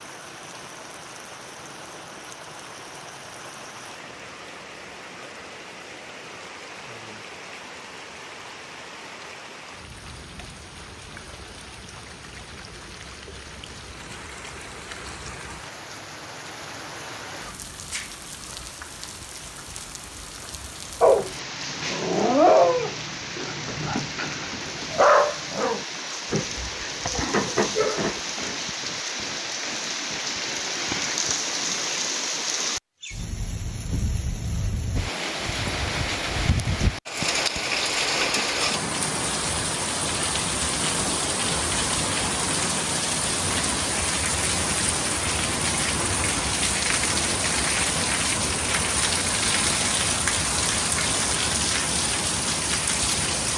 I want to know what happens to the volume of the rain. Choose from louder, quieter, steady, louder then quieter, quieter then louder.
louder.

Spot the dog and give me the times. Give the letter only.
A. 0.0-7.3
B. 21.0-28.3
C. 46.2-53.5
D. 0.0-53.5
B.